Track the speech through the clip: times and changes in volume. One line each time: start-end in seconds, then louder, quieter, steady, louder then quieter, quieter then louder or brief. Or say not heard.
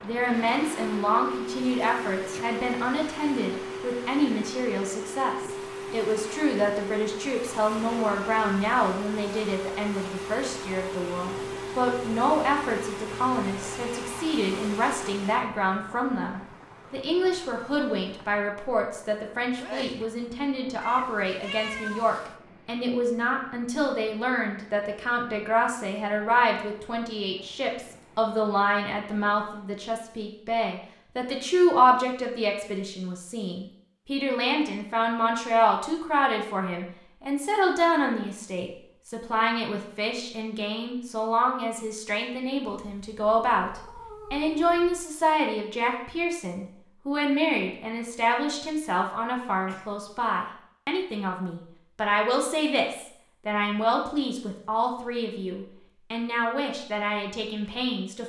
0.0-58.2 steady.